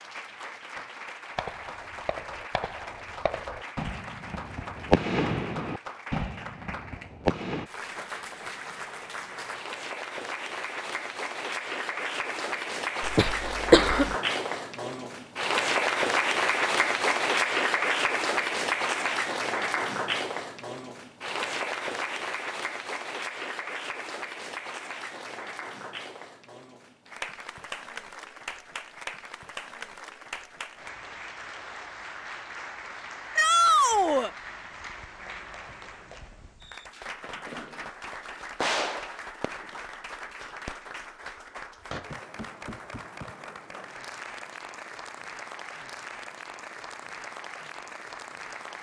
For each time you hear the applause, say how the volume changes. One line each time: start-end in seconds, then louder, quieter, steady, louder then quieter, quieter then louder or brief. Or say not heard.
0.0-48.7 louder then quieter.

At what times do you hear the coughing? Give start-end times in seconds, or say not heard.
13.0-14.2.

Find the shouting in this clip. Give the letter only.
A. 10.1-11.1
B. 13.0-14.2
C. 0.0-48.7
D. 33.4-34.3
D.